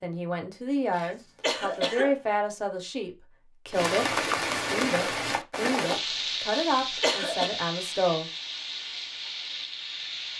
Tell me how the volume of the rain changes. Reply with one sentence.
The loudness of the rain goes down.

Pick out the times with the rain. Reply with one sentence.
You can hear the rain from 3.7 to 10.3 s.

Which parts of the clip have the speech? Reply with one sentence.
You can hear the speech from 0.0 to 8.3 s.